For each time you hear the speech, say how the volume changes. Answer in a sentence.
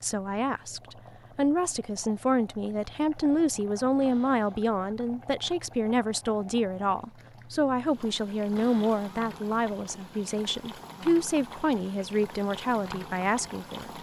The speech can be heard from 0.0 to 13.9 s, at a steady volume.